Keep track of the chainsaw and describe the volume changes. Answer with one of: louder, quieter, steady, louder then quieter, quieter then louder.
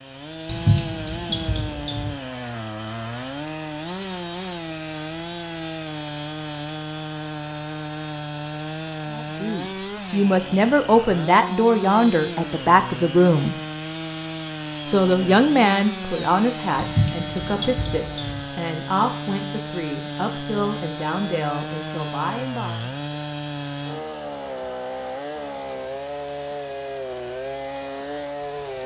steady.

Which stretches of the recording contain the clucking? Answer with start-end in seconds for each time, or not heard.
0.5-2.1, 16.8-18.4.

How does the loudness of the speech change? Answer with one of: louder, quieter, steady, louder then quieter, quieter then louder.
quieter.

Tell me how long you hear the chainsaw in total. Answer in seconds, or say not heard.
29 s.